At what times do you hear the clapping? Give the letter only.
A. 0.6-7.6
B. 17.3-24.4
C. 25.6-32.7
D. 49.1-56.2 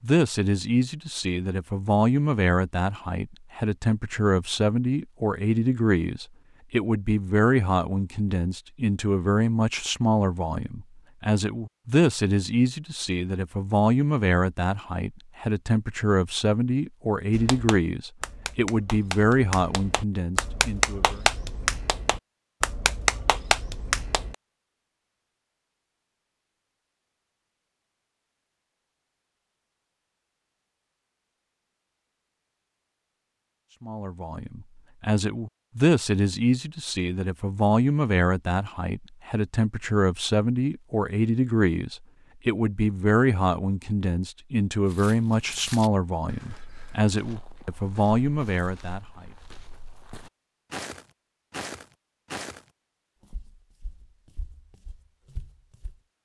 B.